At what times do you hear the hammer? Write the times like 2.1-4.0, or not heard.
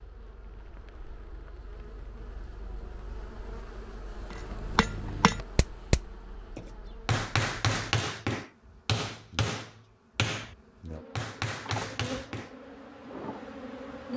4.3-10.6, 11.2-12.6.